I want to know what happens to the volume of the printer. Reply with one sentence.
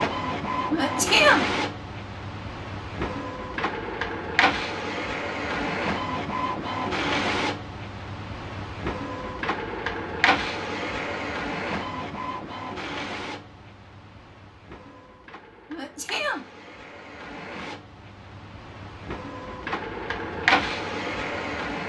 The loudness of the printer goes down, then up.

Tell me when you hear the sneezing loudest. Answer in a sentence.
The loudest moment of the sneezing is at 1 second.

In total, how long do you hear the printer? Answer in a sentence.
The printer can be heard for 22 seconds in total.